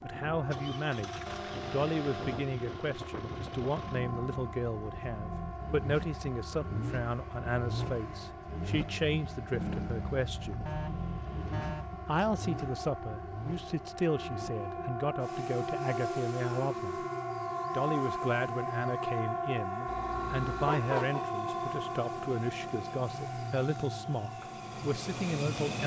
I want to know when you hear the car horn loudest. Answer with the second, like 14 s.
21 s.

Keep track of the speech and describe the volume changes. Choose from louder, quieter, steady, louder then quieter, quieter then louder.
steady.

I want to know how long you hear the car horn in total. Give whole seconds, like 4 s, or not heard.
4 s.